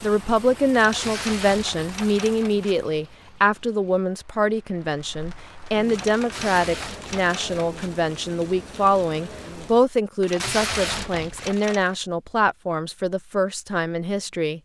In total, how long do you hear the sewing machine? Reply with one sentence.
The sewing machine can't be heard in this clip.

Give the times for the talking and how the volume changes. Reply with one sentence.
The talking can be heard from 0.0 to 14.6 s, at a steady volume.